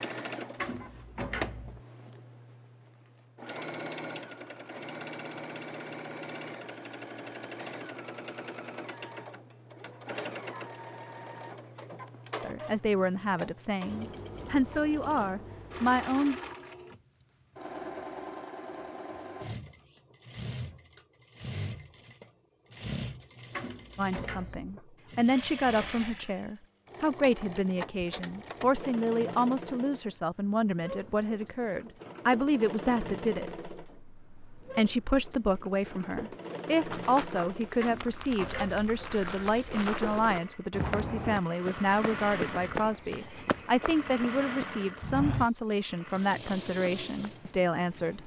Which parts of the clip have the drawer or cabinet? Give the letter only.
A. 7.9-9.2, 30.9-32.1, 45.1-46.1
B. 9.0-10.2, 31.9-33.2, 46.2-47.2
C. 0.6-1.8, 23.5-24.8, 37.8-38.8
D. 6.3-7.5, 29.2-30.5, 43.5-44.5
C.